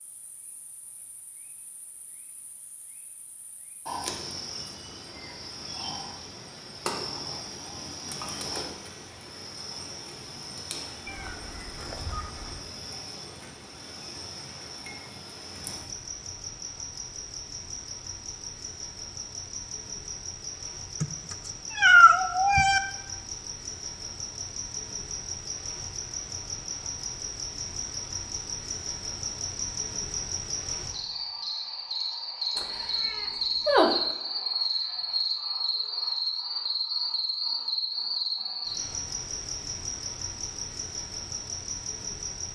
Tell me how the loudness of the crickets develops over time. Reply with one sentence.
The loudness of the crickets goes up.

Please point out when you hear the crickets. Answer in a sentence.
You can hear the crickets from 0.0 to 42.5 s.